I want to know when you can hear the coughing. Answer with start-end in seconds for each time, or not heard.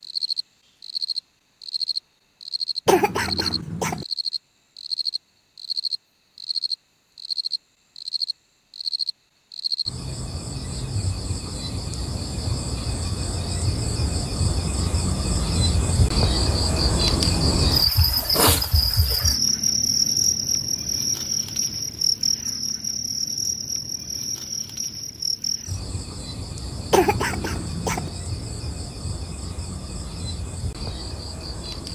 2.9-4.0, 26.9-28.1.